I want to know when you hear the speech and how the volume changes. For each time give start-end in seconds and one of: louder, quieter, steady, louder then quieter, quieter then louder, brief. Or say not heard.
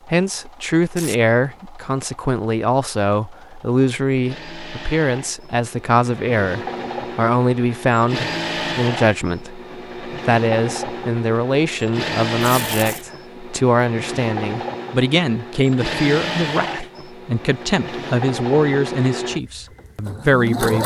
0.1-20.8 steady.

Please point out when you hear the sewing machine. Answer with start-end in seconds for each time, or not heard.
0.0-20.8.